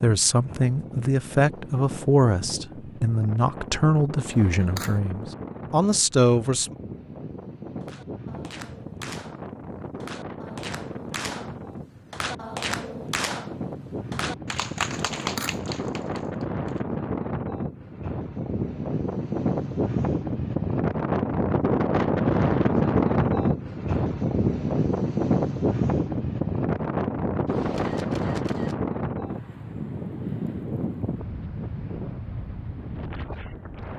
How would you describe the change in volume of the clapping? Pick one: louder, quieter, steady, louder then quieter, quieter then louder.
louder.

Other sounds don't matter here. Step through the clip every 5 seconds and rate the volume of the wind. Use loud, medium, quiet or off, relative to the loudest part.
quiet, quiet, quiet, medium, loud, loud, medium.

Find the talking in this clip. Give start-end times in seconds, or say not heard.
0.0-6.8.